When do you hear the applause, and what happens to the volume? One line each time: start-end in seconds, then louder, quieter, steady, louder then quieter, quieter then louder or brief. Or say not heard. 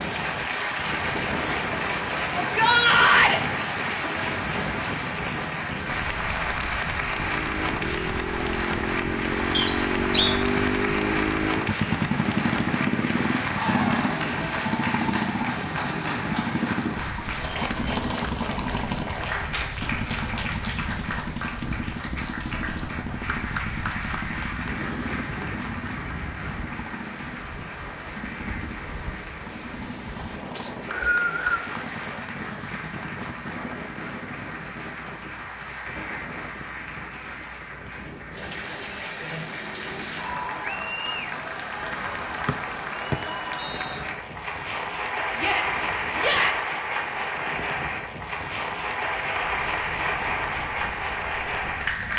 0.0-52.1 quieter then louder.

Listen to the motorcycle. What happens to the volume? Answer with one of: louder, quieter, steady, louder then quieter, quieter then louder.
quieter.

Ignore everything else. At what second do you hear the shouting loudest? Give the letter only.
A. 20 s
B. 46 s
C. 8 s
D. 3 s
D.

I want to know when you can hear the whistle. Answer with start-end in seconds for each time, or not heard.
9.5-10.3, 30.6-31.6, 42.5-44.0.